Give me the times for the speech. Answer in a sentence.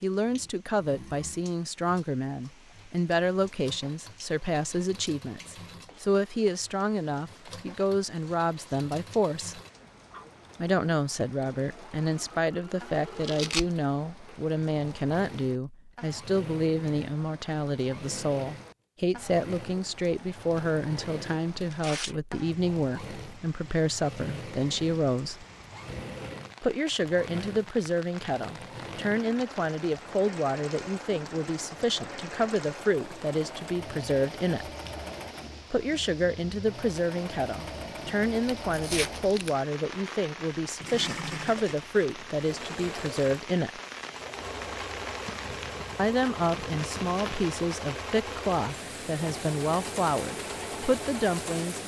The speech can be heard from 0.0 to 9.6 s, from 10.6 to 25.4 s, from 26.6 to 34.7 s, from 35.7 to 43.8 s and from 46.0 to 51.8 s.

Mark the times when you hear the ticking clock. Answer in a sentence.
You can't hear the ticking clock here.